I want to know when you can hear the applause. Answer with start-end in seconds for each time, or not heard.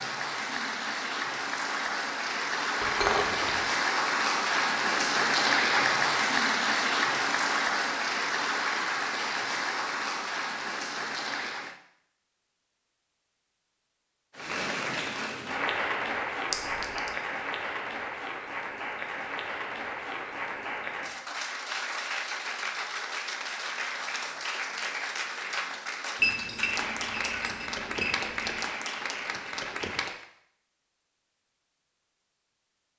0.0-11.8, 14.3-30.2.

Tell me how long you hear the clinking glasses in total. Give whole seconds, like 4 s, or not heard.
4 s.